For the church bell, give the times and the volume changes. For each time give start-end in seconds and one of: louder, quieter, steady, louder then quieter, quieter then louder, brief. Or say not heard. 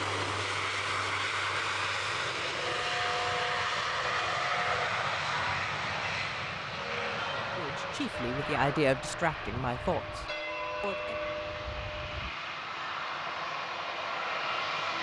2.5-12.3 quieter then louder.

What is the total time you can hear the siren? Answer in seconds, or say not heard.
not heard.